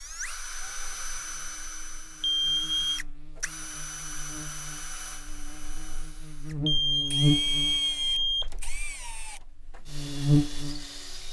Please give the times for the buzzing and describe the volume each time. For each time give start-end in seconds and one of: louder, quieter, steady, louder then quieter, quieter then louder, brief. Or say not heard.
0.2-11.2 louder.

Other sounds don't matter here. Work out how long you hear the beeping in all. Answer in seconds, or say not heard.
3 s.